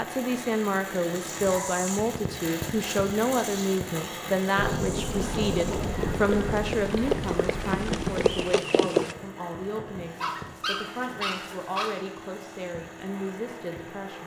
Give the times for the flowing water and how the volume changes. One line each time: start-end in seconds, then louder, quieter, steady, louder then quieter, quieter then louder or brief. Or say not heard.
not heard.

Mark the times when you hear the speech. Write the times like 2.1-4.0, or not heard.
0.0-14.2.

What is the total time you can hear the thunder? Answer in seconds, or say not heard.
4 s.